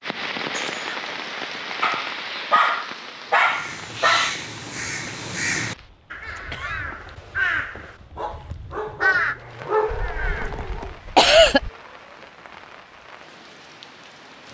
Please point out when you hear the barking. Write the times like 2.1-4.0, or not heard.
1.8-4.3, 8.2-10.9.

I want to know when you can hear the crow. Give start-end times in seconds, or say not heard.
3.3-10.8.